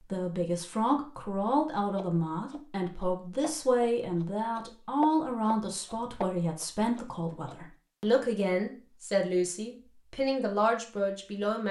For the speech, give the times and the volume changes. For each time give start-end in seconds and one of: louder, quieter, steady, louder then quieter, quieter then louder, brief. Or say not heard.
0.1-11.6 steady.